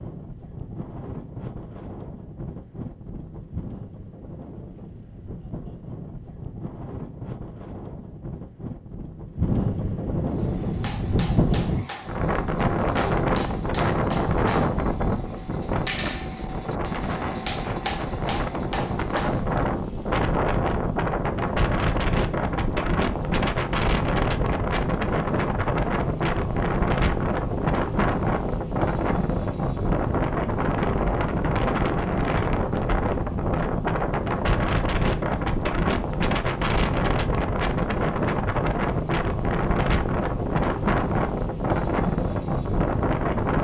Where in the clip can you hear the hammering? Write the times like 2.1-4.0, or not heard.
10.3-19.6.